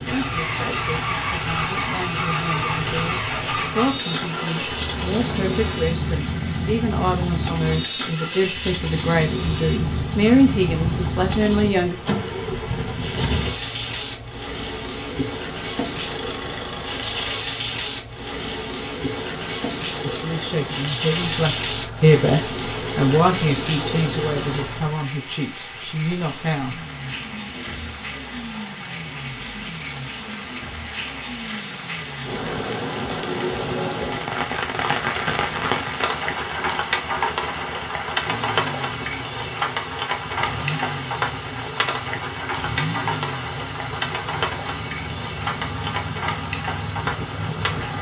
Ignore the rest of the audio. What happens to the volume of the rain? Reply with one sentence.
The volume of the rain goes up.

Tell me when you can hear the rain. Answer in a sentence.
The rain can be heard from 0.0 to 47.9 s.